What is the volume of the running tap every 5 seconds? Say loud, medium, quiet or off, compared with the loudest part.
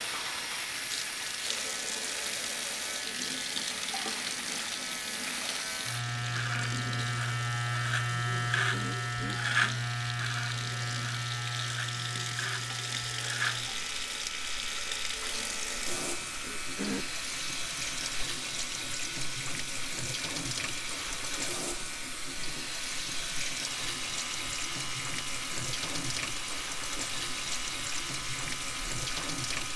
loud, medium, loud, loud, loud, loud.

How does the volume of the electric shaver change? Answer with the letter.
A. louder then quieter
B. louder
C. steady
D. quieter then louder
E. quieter
A.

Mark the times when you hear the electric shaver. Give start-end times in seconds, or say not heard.
0.0-29.7.